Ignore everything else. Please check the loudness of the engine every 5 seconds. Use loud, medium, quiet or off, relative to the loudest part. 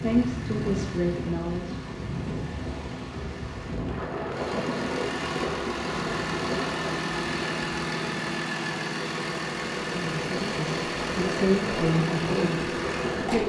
medium, loud, loud.